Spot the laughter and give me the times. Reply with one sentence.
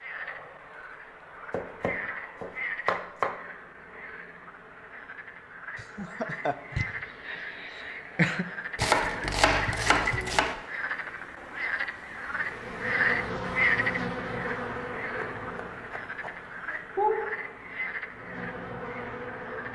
You can hear the laughter from 5.8 to 8.4 s.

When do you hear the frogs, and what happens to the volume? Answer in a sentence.
The frogs can be heard from 0.0 to 19.7 s, getting louder then quieter.